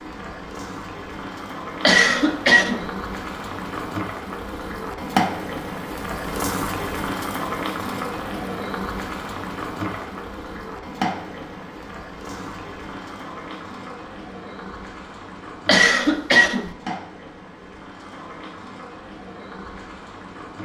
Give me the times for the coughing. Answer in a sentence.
The coughing can be heard from 1.9 to 2.9 s and from 15.7 to 16.7 s.